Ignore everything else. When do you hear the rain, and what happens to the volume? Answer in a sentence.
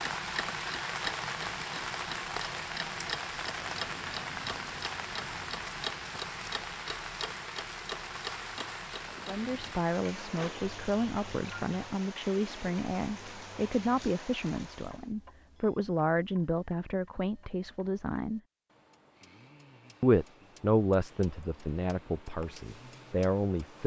You can hear the rain from 0.0 to 15.2 s, getting quieter.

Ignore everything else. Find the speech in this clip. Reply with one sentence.
You can hear the speech from 9.2 to 18.4 s and from 20.0 to 23.8 s.